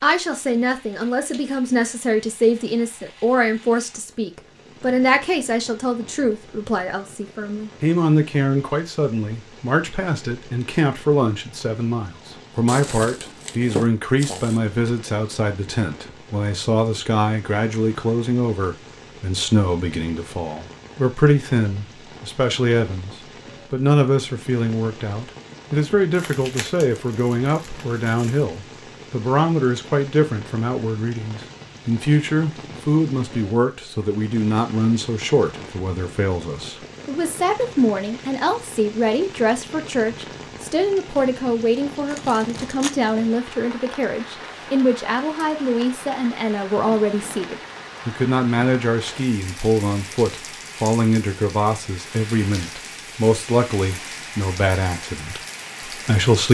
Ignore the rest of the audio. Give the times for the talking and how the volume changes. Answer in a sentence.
You can hear the talking from 0.0 to 56.4 s, at a steady volume.